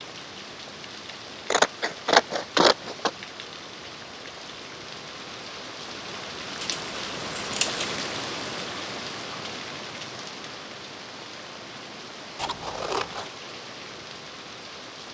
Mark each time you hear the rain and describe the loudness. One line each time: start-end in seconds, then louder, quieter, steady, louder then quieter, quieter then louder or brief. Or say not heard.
0.0-15.0 louder then quieter.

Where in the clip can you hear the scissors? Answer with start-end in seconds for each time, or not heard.
1.5-3.1, 6.6-7.8, 12.3-13.3.